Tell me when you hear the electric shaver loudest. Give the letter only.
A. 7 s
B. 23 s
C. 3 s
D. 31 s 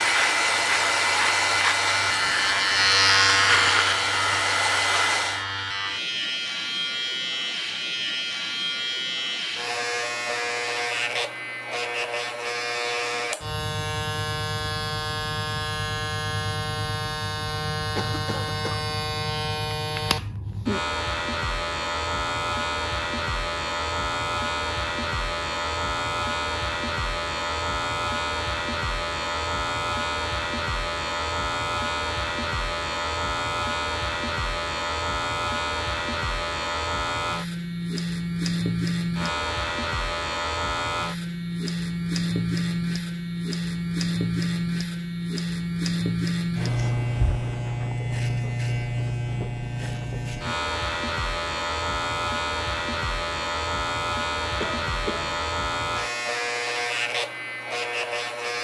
C.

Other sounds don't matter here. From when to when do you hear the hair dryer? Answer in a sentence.
You can hear the hair dryer from 0.0 to 5.5 s.